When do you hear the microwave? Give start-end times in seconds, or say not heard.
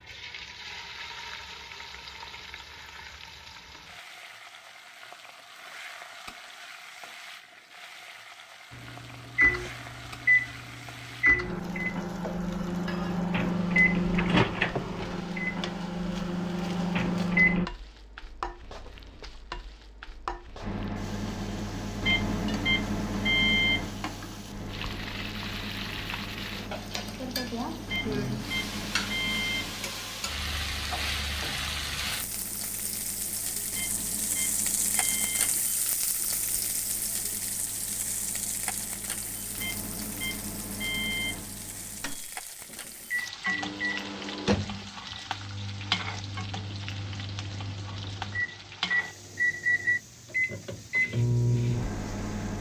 8.7-17.7, 20.6-52.5.